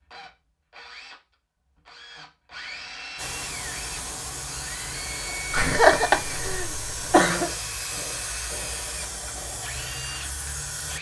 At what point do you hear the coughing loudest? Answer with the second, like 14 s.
6 s.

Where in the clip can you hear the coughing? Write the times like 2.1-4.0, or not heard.
5.5-7.5.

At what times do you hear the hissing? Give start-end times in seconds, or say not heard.
3.1-10.9.